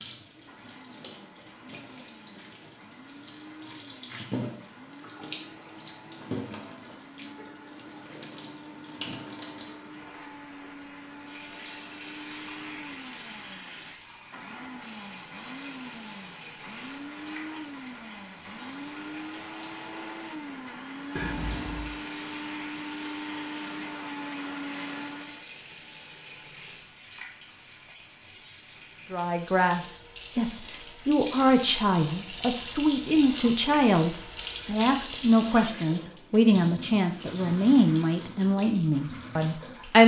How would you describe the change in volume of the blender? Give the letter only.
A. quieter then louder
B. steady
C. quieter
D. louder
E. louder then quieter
D.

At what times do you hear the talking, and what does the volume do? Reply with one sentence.
The talking can be heard from 29.1 to 40.0 s, at a steady volume.